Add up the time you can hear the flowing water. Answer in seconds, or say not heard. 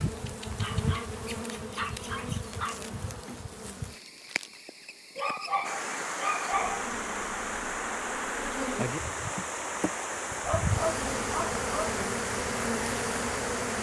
8 s.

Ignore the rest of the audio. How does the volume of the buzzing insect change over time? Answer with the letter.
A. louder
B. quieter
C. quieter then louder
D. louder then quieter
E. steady
C.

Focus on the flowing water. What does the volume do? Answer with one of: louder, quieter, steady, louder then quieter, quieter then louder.
steady.